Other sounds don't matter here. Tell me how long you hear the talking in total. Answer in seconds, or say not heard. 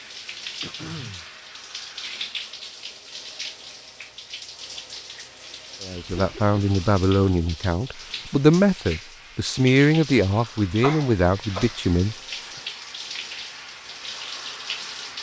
6 s.